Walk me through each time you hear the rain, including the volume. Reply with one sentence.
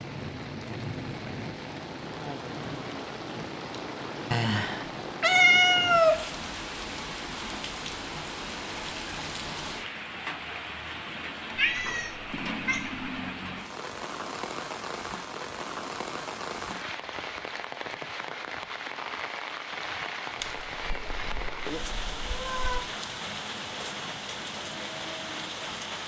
The rain can be heard from 0.0 to 26.0 s, at a steady volume.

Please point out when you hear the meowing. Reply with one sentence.
You can hear the meowing from 4.3 to 6.3 s, from 11.6 to 12.9 s and from 20.4 to 22.9 s.